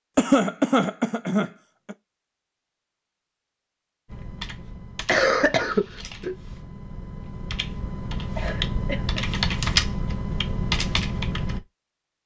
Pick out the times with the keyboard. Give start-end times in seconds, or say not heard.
4.0-11.6.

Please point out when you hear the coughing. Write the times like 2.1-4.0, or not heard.
0.1-1.9, 5.0-6.3, 8.3-9.2.